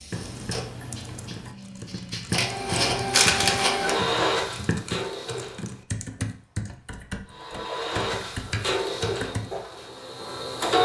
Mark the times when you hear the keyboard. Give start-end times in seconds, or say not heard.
0.1-9.5.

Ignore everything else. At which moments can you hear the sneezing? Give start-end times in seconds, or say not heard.
3.1-4.0.